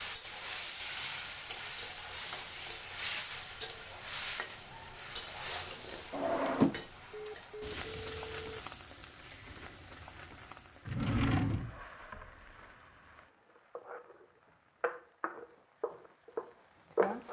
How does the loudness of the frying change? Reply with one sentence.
The volume of the frying goes down, then up.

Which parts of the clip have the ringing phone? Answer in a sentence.
The ringing phone can be heard from 7.1 to 8.6 s.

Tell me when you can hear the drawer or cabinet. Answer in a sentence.
You can hear the drawer or cabinet from 6.1 to 6.8 s and from 10.8 to 11.8 s.